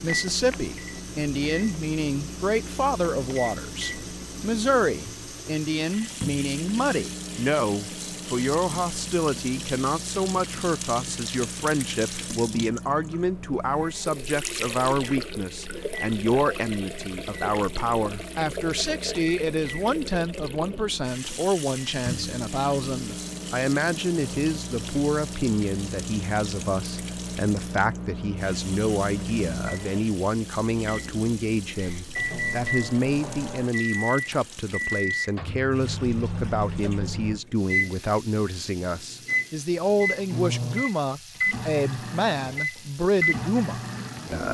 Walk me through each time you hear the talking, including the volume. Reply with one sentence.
The talking can be heard from 0.0 to 44.4 s, at a steady volume.